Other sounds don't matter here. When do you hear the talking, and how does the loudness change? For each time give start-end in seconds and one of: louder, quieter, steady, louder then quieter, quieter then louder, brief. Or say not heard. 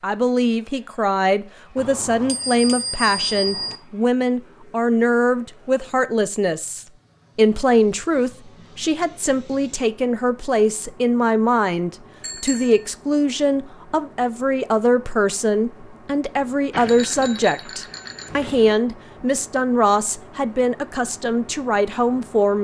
0.0-22.6 steady.